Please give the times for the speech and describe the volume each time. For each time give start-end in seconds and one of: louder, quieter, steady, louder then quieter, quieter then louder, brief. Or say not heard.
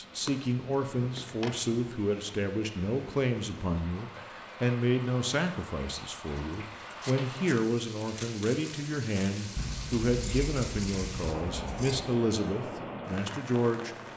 0.0-13.9 steady.